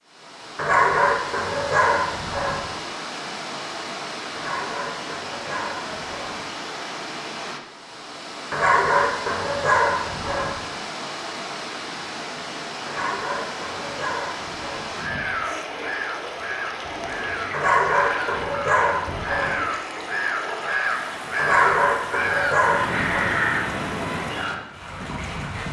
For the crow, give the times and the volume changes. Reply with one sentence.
You can hear the crow from 14.9 to 24.7 s, getting louder.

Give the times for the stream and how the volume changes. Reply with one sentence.
You can hear the stream from 0.1 to 25.6 s, at a steady volume.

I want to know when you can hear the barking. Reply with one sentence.
The barking can be heard from 0.6 to 2.6 s, from 4.3 to 6.3 s, from 8.5 to 10.5 s, from 12.8 to 14.8 s, from 17.5 to 19.6 s and from 21.4 to 23.2 s.